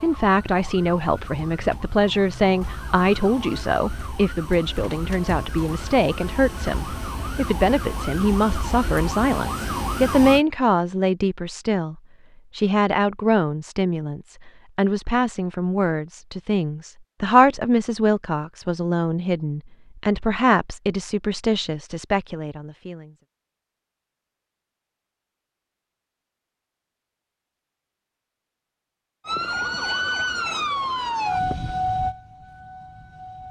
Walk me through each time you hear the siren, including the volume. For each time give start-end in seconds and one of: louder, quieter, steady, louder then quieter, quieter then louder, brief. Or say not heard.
0.0-10.4 louder
29.2-33.4 quieter.